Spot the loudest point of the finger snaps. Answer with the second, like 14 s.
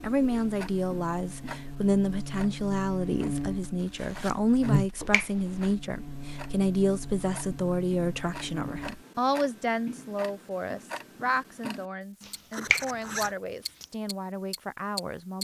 13 s.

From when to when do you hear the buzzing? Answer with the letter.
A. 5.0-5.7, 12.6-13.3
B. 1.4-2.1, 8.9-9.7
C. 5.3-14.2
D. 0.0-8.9
D.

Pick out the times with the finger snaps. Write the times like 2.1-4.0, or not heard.
5.0-5.7, 12.6-13.3.